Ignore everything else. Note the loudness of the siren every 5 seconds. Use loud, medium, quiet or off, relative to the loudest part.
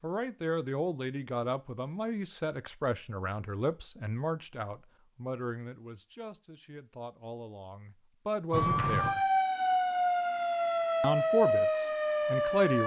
off, loud, loud.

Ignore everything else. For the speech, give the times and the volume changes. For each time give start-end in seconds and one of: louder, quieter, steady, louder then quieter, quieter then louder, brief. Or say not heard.
0.0-9.2 quieter then louder
11.0-12.8 brief.